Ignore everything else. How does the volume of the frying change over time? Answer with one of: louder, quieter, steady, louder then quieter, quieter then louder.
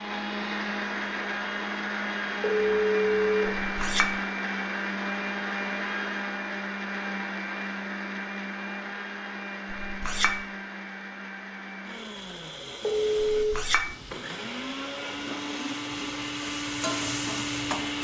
louder.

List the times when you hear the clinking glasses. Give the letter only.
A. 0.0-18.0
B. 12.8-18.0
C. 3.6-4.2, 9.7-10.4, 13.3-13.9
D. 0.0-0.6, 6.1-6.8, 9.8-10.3
C.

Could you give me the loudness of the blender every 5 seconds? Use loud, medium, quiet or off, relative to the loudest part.
loud, loud, medium, loud.